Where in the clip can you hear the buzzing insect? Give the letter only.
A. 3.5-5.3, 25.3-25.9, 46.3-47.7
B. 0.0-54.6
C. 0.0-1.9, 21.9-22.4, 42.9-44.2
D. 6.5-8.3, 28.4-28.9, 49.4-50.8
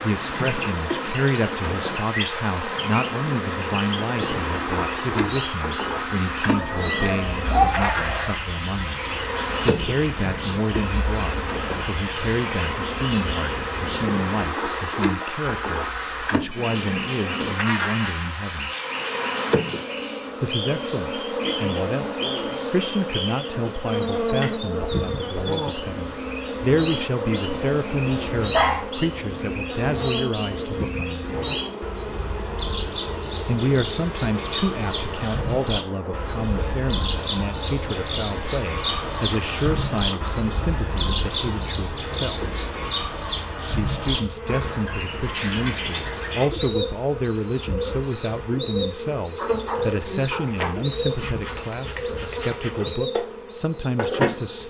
B.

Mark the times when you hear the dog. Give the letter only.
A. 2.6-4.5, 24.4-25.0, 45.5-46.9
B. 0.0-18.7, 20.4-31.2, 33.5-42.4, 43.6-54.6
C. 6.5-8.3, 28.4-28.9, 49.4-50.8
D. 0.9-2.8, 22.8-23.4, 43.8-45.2
C.